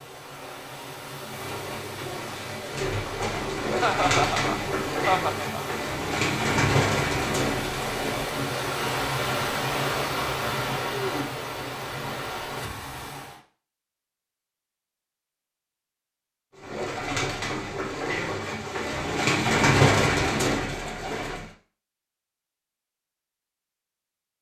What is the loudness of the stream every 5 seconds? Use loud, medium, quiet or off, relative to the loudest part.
medium, loud, loud, off, off.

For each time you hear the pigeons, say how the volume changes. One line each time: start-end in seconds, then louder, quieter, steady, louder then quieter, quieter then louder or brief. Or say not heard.
1.2-8.3 louder
16.6-21.5 louder then quieter.